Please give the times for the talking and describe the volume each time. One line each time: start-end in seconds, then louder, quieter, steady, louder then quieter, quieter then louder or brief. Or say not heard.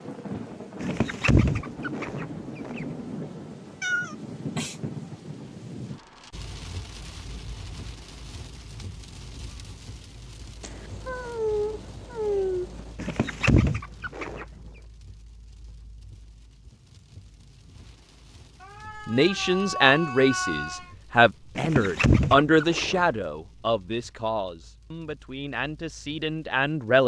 19.1-27.0 quieter.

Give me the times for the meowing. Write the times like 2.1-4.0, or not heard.
3.8-4.8, 10.6-12.9, 18.6-20.9.